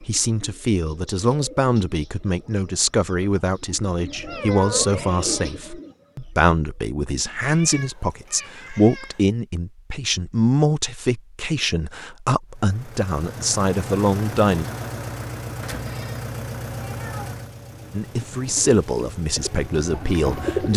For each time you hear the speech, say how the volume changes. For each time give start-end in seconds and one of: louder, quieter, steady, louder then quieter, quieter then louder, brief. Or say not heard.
0.0-14.7 steady
17.9-20.7 brief.